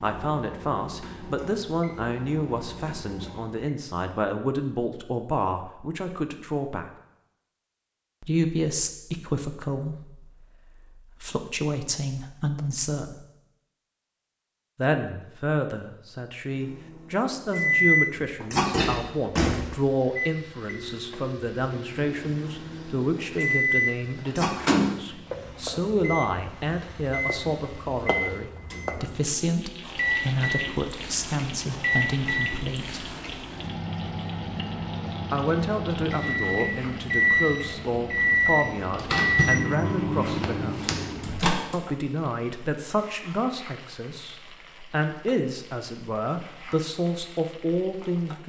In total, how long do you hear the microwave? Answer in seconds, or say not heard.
29 s.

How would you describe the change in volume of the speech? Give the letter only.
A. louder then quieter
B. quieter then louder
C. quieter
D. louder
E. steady
E.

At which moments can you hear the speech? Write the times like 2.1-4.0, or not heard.
0.0-6.8, 8.2-13.2, 14.8-33.0, 35.3-40.9, 41.7-48.4.